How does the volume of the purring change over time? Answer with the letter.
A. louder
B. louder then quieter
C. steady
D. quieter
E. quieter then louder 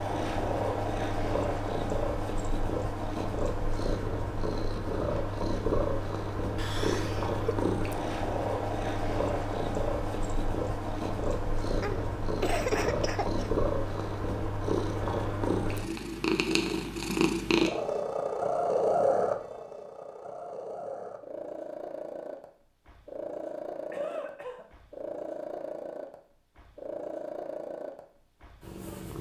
D.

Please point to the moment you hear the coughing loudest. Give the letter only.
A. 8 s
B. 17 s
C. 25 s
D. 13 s
D.